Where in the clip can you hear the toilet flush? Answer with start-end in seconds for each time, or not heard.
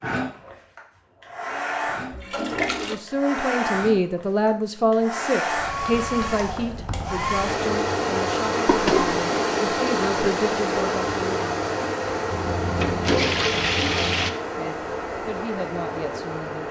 2.1-3.0, 8.7-9.2, 12.3-14.3.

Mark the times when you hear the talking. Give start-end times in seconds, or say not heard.
2.8-11.6, 14.6-16.6.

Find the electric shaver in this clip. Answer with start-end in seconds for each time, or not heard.
not heard.